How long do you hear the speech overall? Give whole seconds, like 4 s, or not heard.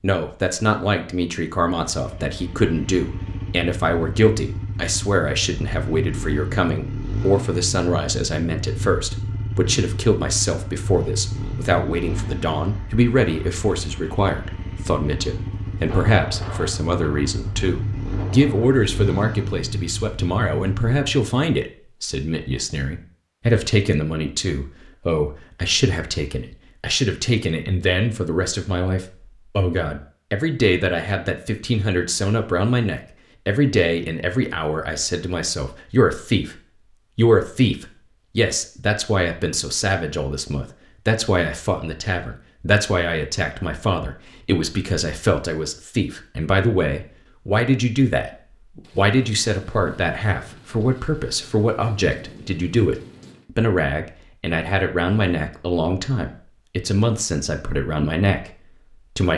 59 s.